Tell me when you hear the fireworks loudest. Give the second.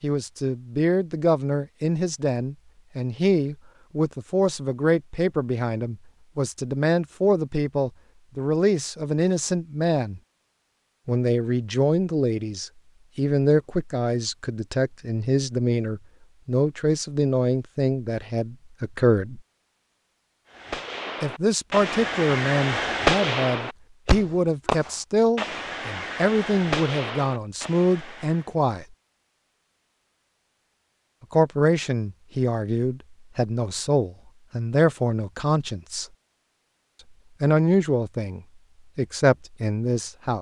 23 s.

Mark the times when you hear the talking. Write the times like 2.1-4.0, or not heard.
0.0-10.2, 11.1-19.4, 21.2-28.9, 31.3-36.0, 37.4-40.3.